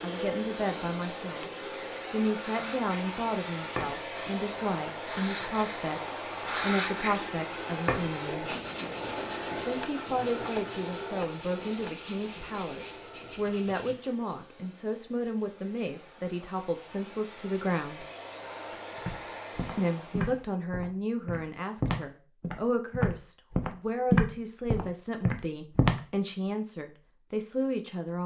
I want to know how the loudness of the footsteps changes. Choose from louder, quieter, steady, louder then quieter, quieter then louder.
louder then quieter.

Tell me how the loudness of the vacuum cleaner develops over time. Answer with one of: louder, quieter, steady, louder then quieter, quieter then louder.
quieter then louder.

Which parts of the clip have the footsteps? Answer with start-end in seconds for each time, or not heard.
19.1-26.0.